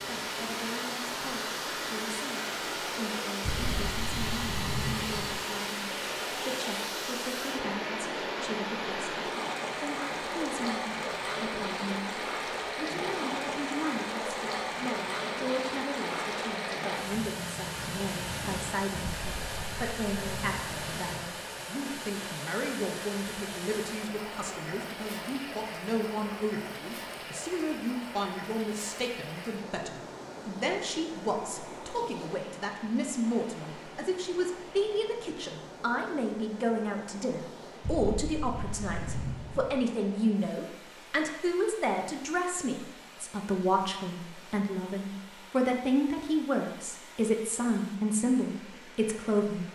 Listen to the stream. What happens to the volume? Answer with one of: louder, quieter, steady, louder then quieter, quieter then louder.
quieter.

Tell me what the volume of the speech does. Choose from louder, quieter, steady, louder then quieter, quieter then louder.
louder.